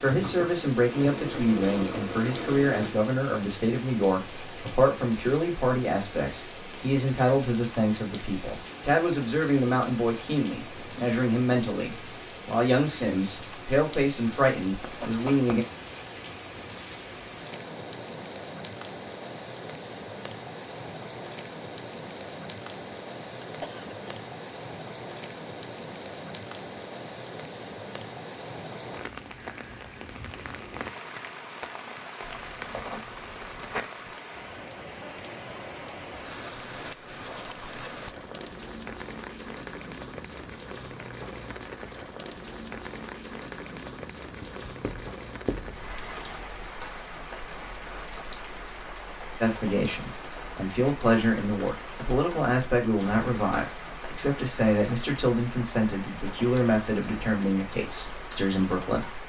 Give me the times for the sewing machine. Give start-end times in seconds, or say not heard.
0.0-2.9.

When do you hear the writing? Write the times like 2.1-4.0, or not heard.
14.8-15.7, 32.2-33.8, 44.4-46.1.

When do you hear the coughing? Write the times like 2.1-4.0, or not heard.
23.4-24.1.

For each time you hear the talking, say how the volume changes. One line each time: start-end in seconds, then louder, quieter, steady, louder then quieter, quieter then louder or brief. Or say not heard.
0.0-15.7 steady
49.4-59.2 steady.